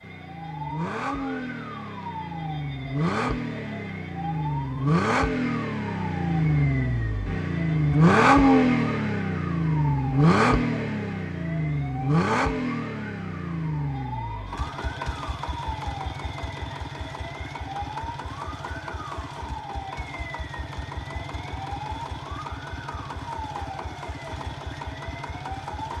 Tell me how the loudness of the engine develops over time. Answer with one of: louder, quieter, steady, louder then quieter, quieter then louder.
louder then quieter.